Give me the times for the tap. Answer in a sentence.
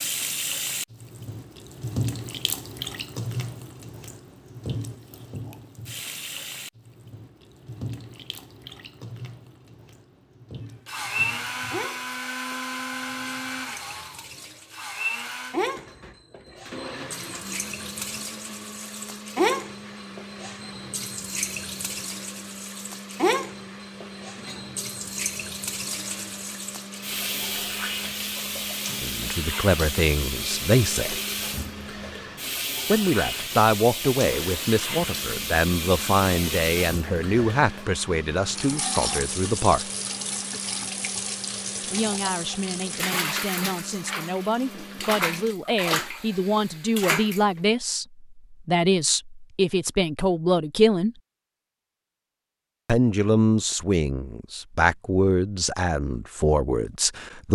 The tap can be heard from 0.0 to 47.6 s.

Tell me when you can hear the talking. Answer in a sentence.
You can hear the talking from 29.0 to 31.2 s, from 32.9 to 39.9 s, from 41.9 to 51.1 s and from 52.9 to 57.4 s.